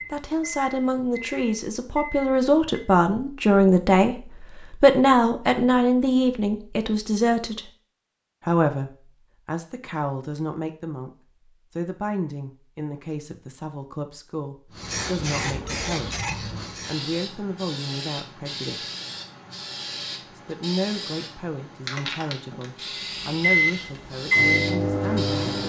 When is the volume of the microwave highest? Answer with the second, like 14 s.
24 s.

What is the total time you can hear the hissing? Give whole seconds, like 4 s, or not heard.
11 s.